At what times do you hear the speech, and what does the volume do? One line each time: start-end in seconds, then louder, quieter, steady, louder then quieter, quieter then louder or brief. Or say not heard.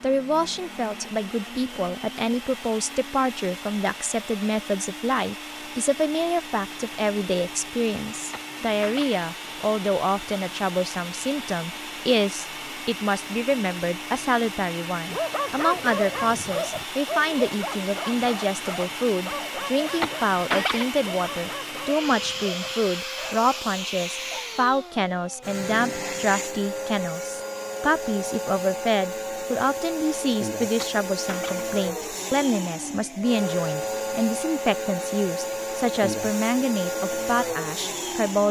0.0-38.4 steady.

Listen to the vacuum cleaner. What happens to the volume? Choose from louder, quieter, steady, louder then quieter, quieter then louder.
louder.